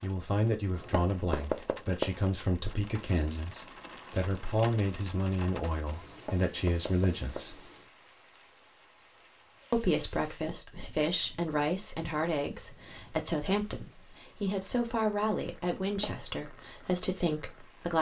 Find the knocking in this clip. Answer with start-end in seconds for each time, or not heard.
0.7-2.2, 6.0-7.9, 15.8-16.2.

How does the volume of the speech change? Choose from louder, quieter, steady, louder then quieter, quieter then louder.
steady.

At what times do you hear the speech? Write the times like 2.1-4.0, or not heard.
0.0-7.7, 9.7-17.9.